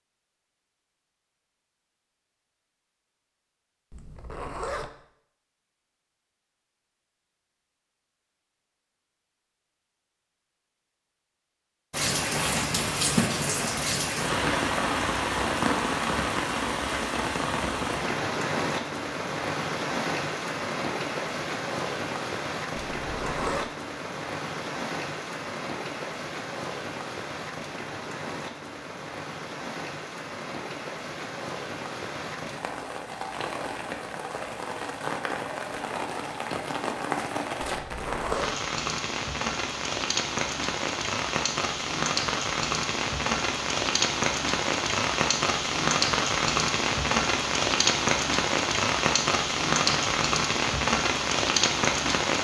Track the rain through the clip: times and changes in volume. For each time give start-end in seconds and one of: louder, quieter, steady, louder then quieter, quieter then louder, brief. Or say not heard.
11.9-52.3 quieter then louder.